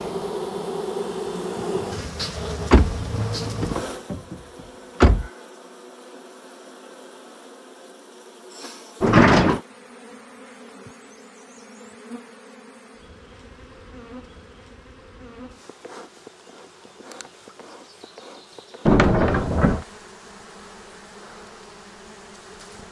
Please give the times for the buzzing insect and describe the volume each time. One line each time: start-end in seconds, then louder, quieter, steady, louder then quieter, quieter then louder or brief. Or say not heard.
0.0-22.8 quieter.